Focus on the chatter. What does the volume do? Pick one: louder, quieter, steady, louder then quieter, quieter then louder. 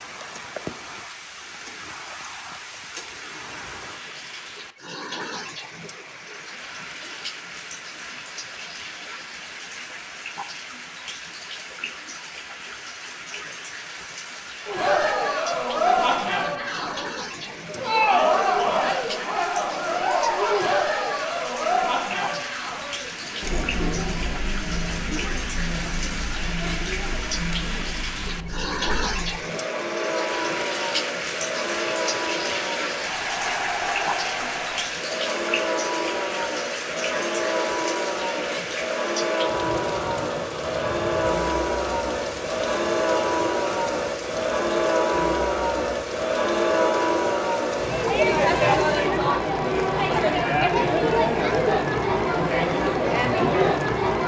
quieter then louder.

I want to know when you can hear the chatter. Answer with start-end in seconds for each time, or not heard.
14.7-54.2.